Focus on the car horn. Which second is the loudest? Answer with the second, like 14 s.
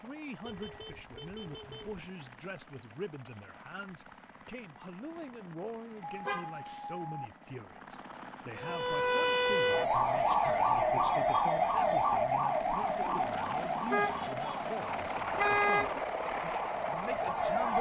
16 s.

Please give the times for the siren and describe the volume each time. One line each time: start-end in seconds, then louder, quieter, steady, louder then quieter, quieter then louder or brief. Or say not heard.
8.6-17.7 quieter.